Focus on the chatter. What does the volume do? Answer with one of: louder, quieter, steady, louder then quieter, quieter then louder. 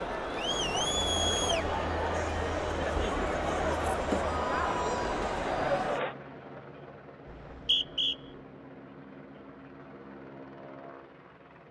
steady.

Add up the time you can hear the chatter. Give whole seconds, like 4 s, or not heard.
6 s.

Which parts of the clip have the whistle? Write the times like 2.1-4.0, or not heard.
7.2-8.2.